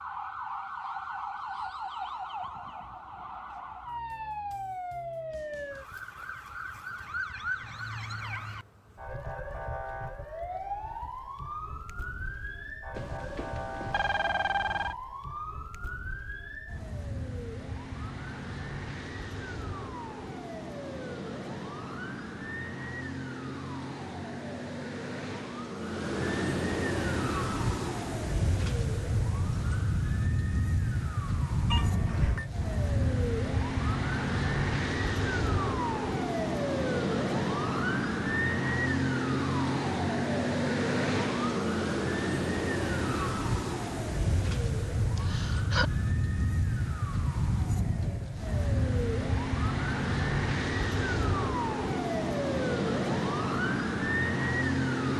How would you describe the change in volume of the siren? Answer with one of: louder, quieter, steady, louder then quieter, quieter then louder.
louder.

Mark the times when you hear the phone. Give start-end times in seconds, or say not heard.
12.9-14.9, 31.7-32.5.